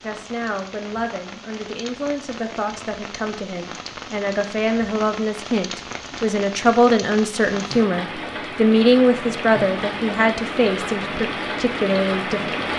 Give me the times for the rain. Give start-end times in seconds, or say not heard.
0.0-12.7.